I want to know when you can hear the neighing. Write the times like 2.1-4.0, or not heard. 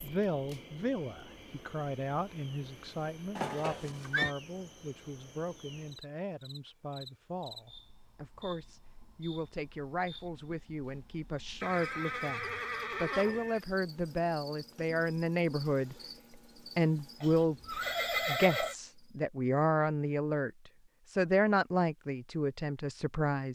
3.4-4.3, 11.6-13.6, 17.2-18.8.